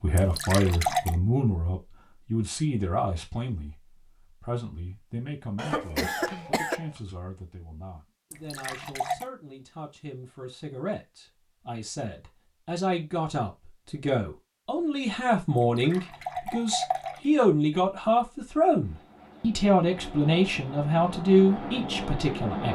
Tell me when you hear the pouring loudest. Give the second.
1 s.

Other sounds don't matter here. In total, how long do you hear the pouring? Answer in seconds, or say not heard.
4 s.